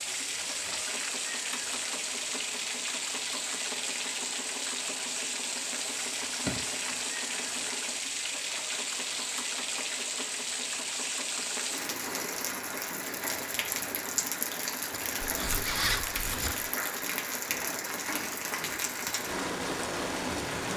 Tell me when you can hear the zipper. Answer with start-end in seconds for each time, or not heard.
14.9-16.6.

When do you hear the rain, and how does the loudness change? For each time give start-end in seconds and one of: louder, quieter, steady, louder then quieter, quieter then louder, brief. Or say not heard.
0.0-20.7 steady.